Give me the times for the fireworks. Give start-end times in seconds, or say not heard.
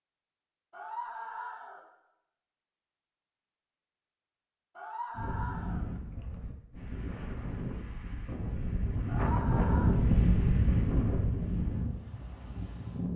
not heard.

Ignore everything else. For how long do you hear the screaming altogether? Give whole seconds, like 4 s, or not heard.
3 s.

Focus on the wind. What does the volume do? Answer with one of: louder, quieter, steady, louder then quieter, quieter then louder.
louder then quieter.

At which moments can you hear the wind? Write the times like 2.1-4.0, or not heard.
5.2-13.1.